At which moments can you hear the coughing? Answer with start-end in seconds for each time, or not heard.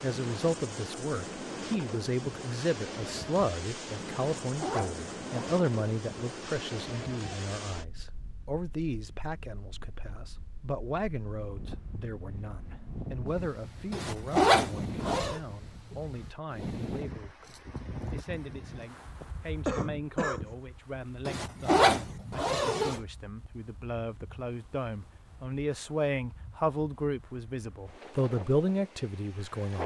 19.2-20.6.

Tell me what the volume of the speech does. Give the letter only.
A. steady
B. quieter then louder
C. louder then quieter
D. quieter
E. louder
B.